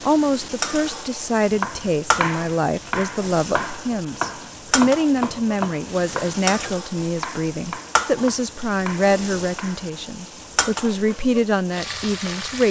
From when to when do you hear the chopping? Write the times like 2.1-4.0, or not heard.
1.4-9.9.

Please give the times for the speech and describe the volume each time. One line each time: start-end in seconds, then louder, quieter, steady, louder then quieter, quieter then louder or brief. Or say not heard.
0.0-12.6 steady.